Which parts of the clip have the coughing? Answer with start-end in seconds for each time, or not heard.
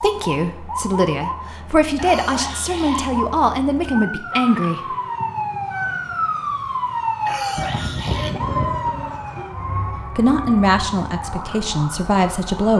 1.9-3.1, 7.2-8.4.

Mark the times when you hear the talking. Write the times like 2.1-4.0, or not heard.
0.0-5.0, 10.1-12.7.